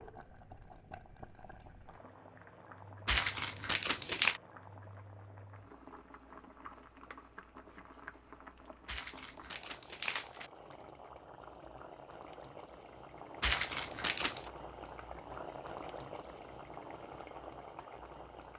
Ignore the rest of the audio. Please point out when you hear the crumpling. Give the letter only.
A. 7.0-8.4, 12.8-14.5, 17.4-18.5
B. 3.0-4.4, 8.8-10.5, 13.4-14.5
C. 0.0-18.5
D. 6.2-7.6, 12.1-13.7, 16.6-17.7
B.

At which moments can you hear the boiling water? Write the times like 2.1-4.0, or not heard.
0.0-18.5.